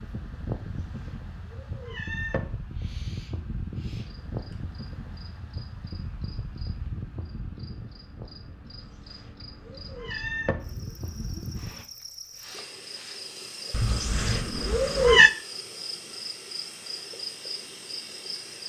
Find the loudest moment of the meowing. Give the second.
15 s.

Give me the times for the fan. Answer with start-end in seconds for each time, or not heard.
0.0-11.8.